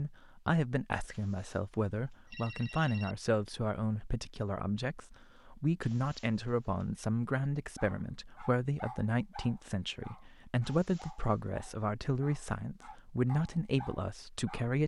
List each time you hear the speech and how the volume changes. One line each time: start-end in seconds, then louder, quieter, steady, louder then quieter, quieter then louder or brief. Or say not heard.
0.0-14.8 steady.